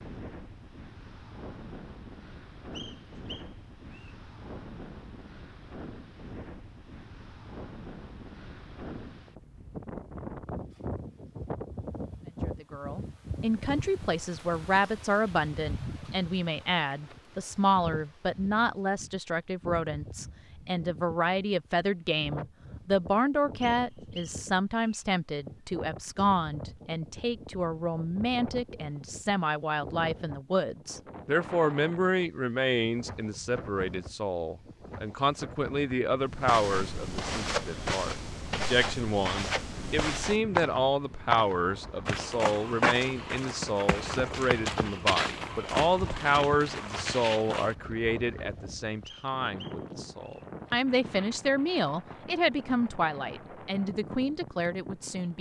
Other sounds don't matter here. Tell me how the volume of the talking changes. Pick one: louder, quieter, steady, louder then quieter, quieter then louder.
steady.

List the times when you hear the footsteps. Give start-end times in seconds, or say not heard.
36.3-47.8.